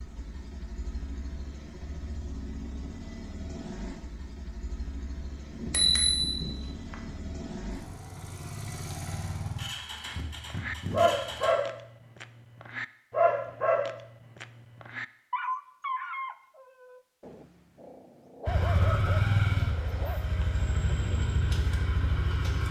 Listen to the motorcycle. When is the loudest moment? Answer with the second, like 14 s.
19 s.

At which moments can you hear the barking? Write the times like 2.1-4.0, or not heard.
10.1-20.2.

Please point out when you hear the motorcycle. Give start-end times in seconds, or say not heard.
0.0-11.6, 18.4-22.6.